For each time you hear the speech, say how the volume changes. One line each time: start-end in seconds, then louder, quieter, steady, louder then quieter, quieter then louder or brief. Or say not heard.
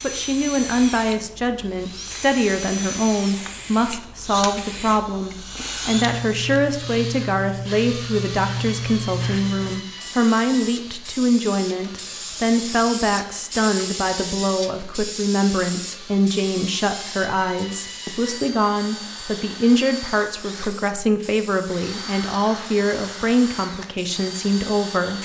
0.0-25.2 steady.